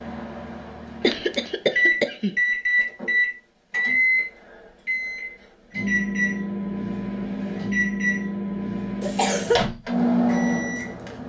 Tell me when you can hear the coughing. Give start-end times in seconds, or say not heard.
1.0-2.4, 9.0-9.7.